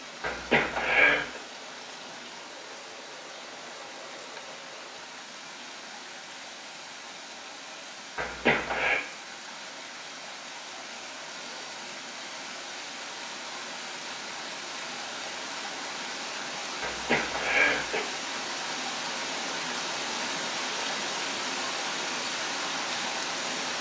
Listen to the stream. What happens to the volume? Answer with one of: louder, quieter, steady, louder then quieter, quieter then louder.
louder.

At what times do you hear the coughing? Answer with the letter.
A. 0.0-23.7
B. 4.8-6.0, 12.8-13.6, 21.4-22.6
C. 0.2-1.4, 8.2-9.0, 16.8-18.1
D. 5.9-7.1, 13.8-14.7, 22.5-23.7
C.